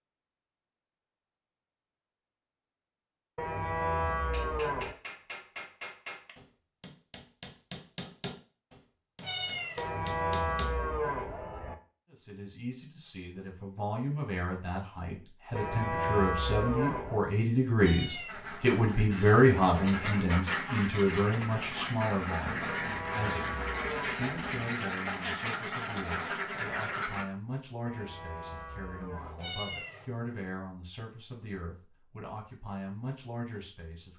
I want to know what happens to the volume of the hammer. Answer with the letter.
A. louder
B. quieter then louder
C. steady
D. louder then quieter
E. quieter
C.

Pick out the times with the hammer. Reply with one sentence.
You can hear the hammer from 4.3 to 10.7 s.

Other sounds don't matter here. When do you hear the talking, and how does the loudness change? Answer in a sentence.
The talking can be heard from 12.1 to 34.1 s, getting louder then quieter.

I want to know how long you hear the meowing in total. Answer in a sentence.
The meowing can be heard for 2 seconds in total.